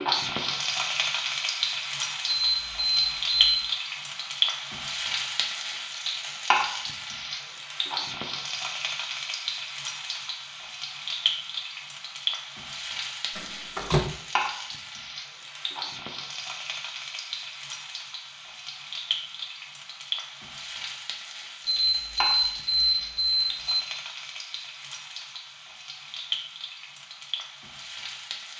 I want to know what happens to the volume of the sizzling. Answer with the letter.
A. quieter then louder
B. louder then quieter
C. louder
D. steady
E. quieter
E.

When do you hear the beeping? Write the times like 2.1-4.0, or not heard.
2.2-3.6, 21.6-23.9.